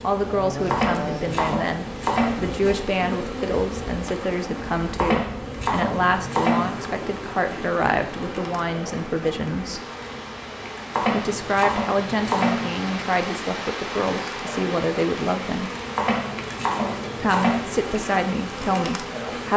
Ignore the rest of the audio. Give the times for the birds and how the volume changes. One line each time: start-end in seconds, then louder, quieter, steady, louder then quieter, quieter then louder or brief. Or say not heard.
not heard.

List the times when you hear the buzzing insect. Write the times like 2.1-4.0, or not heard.
0.0-19.5.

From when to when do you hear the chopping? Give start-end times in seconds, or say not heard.
0.7-2.8, 5.0-6.9, 10.9-12.8, 15.9-17.6.